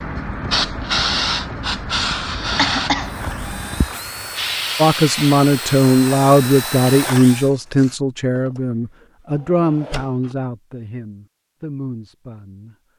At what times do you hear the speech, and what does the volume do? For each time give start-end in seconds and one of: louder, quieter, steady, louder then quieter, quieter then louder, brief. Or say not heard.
4.8-12.8 quieter.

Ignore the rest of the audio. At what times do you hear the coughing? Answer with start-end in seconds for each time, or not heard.
2.5-3.1.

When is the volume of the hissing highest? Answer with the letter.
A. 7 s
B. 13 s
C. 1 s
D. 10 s
C.